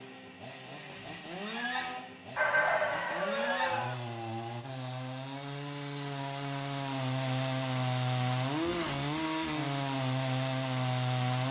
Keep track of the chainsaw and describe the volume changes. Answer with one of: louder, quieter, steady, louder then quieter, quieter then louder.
louder.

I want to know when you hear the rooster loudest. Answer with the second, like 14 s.
3 s.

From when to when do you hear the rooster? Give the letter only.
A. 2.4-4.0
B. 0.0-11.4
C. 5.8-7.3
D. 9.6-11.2
A.